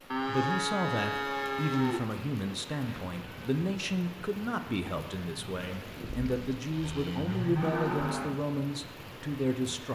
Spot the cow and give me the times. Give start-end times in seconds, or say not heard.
0.1-2.0, 5.5-8.3.